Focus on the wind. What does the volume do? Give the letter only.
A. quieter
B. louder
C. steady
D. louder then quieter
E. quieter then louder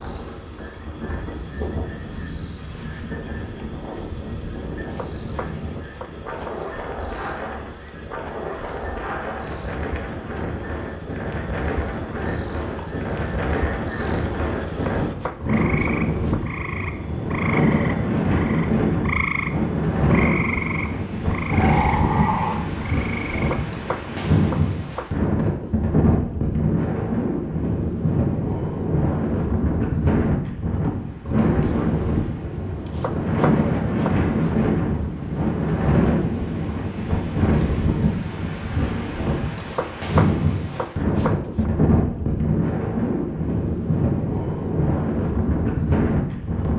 B.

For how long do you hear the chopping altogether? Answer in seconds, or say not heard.
9 s.